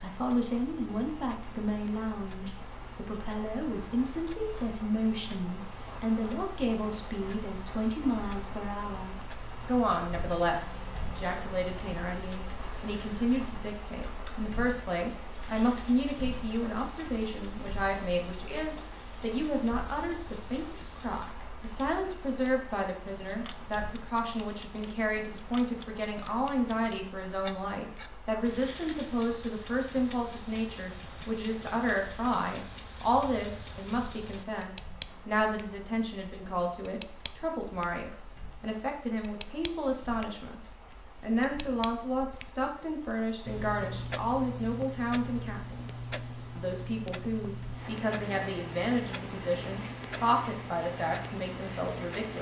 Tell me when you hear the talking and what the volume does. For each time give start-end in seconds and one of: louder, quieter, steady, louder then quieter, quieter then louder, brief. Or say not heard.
0.0-52.3 steady.